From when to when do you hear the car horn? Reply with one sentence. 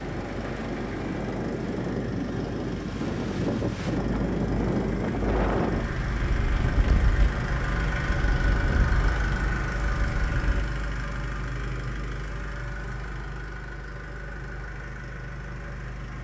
You can't hear the car horn here.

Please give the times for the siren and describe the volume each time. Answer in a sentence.
You can't hear the siren here.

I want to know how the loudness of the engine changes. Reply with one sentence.
The volume of the engine goes up, then down.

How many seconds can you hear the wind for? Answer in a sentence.
The wind can be heard for 11 seconds in total.